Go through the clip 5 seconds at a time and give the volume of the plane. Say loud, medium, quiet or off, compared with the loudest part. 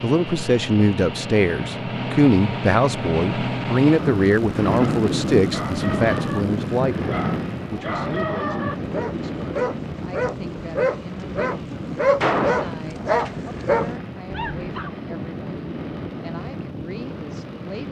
loud, loud, medium, medium.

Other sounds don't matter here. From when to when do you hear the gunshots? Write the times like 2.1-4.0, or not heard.
12.2-13.3.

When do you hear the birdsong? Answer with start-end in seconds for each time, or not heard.
not heard.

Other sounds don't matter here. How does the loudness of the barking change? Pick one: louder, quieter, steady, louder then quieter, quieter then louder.
louder.